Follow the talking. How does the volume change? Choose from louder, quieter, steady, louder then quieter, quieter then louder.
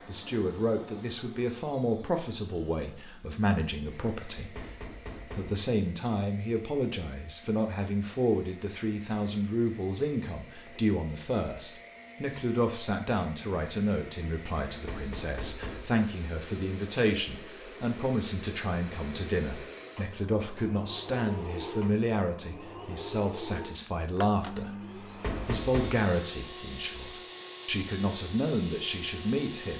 steady.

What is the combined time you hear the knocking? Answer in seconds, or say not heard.
3 s.